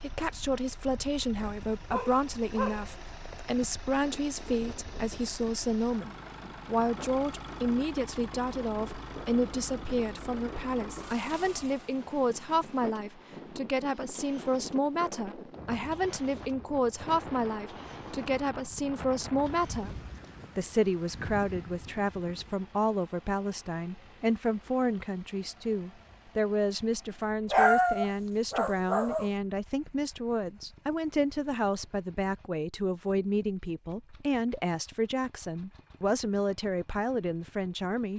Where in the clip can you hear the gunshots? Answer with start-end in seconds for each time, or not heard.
not heard.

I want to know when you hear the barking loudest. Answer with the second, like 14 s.
28 s.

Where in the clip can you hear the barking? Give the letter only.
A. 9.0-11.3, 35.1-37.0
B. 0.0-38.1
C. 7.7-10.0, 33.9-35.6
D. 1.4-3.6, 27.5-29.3
D.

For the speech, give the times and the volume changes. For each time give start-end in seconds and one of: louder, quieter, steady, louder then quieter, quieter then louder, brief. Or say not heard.
0.0-38.1 steady.